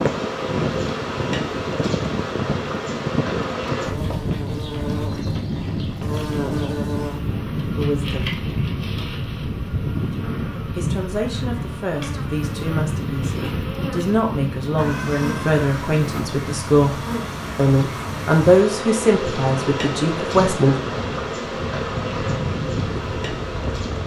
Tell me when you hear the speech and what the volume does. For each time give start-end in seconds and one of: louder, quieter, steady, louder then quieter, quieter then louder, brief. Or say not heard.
7.8-8.3 brief
10.7-20.8 louder.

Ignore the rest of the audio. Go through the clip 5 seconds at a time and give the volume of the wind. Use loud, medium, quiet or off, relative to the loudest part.
loud, loud, loud, medium, loud.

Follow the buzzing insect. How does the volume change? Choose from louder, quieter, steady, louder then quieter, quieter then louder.
quieter then louder.